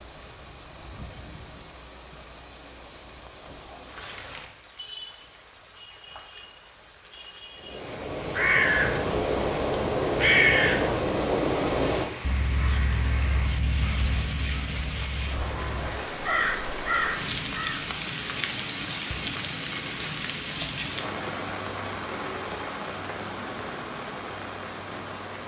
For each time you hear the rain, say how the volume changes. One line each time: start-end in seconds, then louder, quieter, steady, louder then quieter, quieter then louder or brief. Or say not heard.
0.0-25.4 louder.